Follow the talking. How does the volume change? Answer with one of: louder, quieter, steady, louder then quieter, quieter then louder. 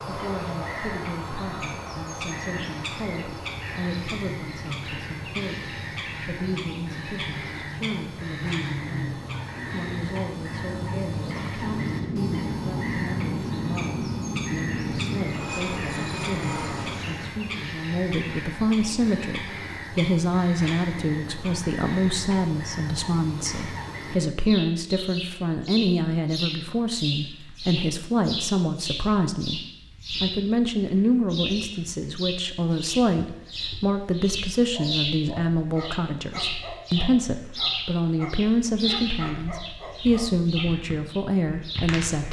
louder.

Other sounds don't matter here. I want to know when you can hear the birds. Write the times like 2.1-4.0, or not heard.
0.0-42.2.